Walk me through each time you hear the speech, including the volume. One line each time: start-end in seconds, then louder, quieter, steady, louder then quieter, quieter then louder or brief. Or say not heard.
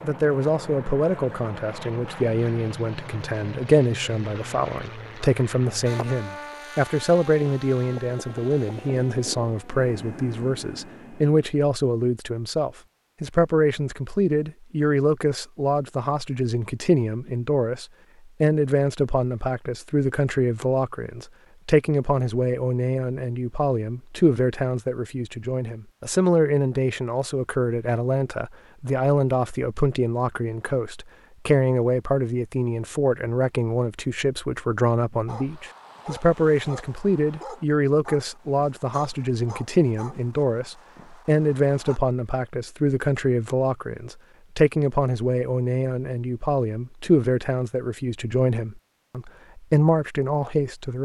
0.0-50.9 steady.